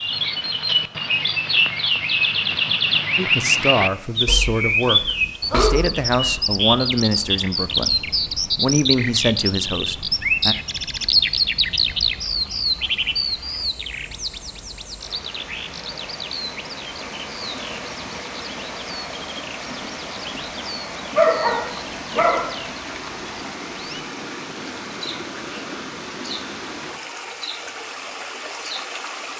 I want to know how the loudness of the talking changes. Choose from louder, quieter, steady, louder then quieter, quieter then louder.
steady.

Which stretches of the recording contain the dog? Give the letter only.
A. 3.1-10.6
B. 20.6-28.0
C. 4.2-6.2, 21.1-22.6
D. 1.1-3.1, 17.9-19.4
C.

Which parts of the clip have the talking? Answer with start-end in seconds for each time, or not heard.
3.1-10.6.